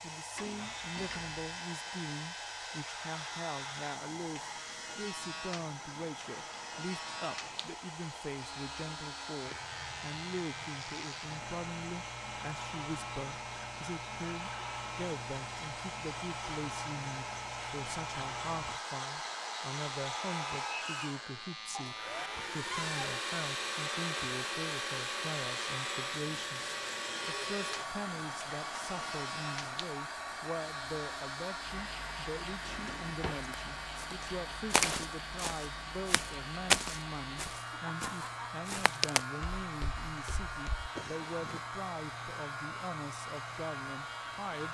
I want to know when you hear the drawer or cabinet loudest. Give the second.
23 s.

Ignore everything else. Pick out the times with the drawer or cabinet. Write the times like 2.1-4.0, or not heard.
0.3-1.6, 22.7-23.2, 32.6-33.5.